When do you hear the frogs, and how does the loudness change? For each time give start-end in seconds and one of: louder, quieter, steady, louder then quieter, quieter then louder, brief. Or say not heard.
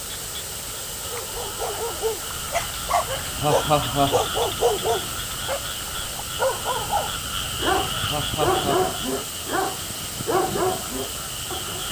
0.0-11.8 louder then quieter.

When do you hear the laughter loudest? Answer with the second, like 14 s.
4 s.